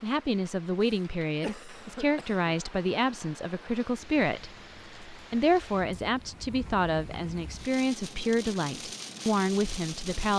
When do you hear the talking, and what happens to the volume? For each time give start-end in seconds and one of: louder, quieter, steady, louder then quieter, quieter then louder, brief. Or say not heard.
0.0-10.3 steady.